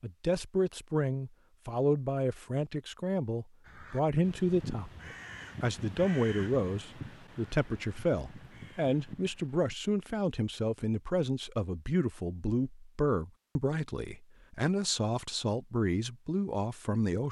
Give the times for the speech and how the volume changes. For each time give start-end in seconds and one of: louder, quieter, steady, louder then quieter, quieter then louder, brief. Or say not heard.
0.0-17.2 steady.